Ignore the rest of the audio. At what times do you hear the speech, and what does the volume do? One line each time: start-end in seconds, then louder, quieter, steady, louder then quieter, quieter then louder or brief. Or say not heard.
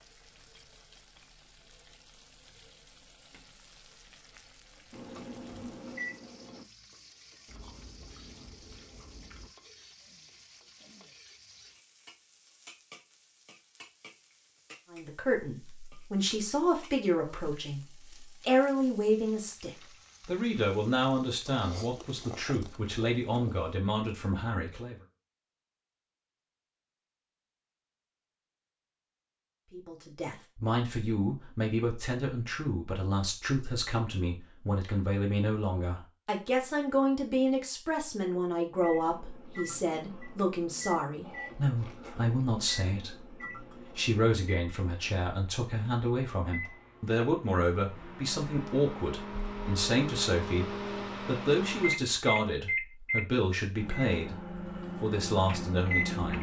14.9-24.9 steady
29.7-56.3 steady.